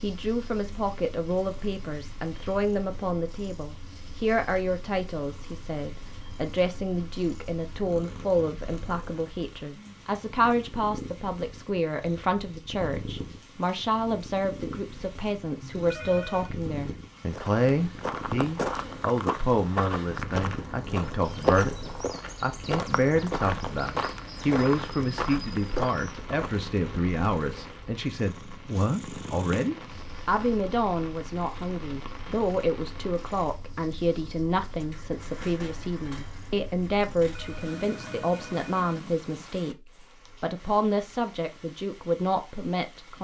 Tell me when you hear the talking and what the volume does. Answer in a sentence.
You can hear the talking from 0.0 to 21.8 s, at a steady volume; from 22.4 to 39.8 s, at a steady volume; and briefly from 40.4 to 43.1 s.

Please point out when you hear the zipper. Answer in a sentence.
The zipper can't be heard in this clip.